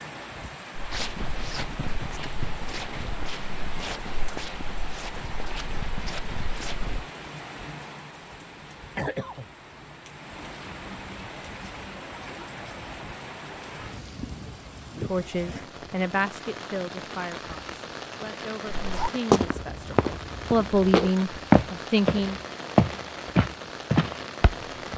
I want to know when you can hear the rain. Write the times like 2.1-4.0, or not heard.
0.0-24.9.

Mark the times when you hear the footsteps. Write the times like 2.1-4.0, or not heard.
0.8-7.0, 18.7-24.9.